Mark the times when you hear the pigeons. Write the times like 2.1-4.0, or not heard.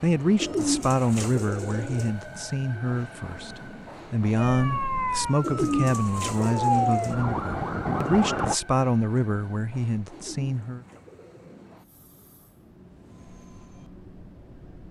0.4-2.1, 5.4-7.2, 10.1-11.8.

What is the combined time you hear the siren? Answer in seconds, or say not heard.
4 s.